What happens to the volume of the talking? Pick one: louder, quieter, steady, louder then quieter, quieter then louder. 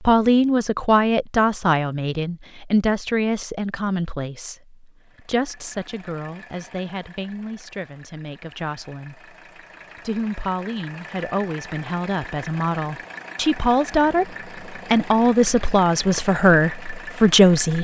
quieter then louder.